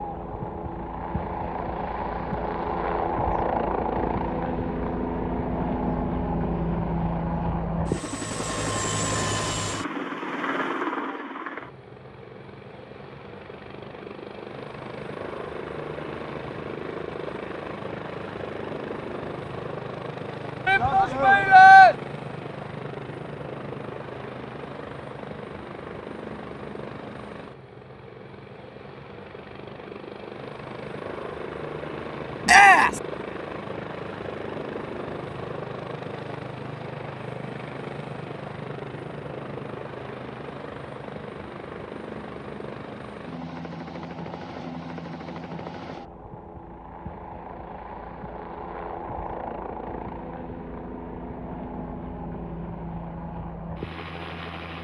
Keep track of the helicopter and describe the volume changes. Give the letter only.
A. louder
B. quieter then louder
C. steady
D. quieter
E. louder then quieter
D.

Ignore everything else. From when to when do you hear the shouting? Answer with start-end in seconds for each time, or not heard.
20.6-21.9, 32.5-33.0.